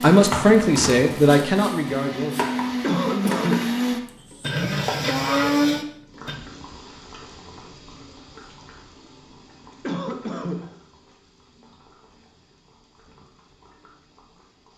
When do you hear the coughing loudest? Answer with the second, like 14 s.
3 s.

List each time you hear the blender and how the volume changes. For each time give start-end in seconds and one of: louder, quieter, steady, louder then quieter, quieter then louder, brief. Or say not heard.
0.0-6.3 louder.